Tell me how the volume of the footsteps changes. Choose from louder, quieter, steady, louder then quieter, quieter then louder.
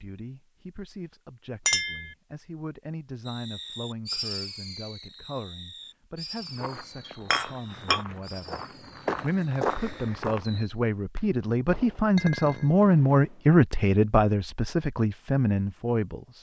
louder.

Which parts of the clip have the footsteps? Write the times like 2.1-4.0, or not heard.
6.4-10.7.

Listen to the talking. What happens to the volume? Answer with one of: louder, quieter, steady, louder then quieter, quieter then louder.
louder.